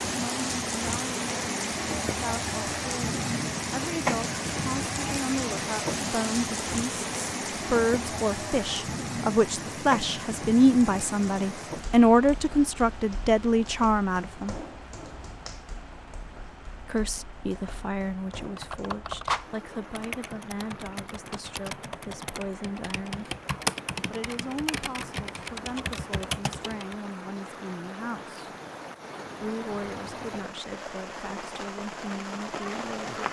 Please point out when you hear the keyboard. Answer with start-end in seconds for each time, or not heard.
18.4-26.9.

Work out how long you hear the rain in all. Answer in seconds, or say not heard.
33 s.